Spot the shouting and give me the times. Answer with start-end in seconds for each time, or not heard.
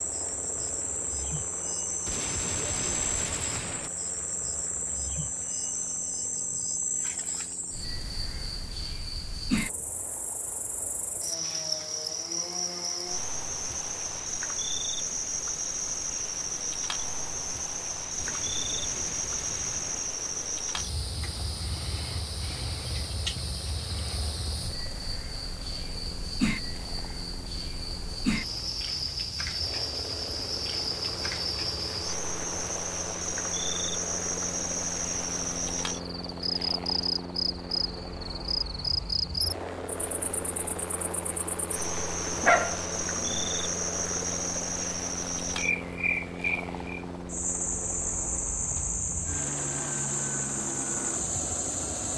not heard.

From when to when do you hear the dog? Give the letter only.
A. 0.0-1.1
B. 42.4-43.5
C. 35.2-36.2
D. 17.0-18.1
B.